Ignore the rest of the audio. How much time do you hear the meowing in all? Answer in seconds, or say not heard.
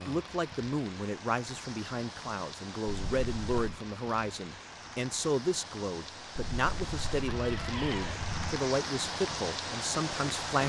3 s.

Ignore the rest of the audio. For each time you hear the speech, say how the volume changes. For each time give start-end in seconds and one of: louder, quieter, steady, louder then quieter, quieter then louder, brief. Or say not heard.
0.1-10.6 steady.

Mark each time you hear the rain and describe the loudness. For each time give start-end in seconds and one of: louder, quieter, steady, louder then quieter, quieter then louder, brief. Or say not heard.
0.0-10.6 louder.